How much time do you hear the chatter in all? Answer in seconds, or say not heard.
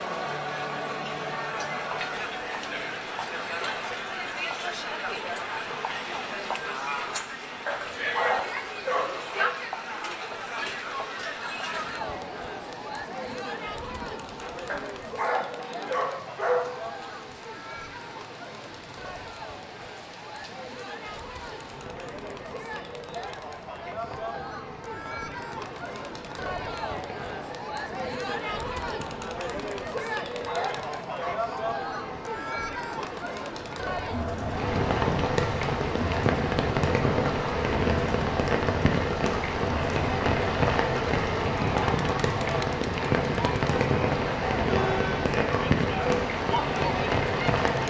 48 s.